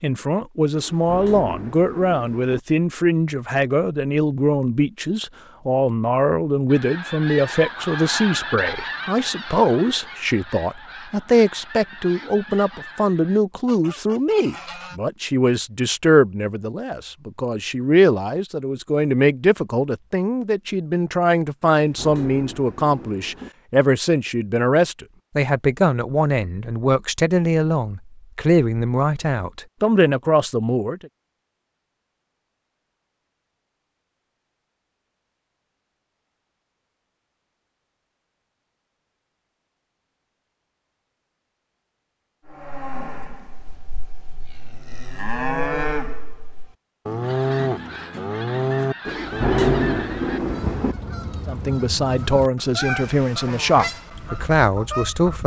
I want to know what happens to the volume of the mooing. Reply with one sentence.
The volume of the mooing goes up.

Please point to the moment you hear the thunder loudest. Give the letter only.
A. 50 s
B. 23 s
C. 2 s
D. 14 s
A.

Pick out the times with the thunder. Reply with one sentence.
The thunder can be heard from 0.7 to 2.6 s, from 21.7 to 23.5 s and from 49.0 to 51.0 s.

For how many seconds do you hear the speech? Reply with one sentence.
You can hear the speech for 35 seconds altogether.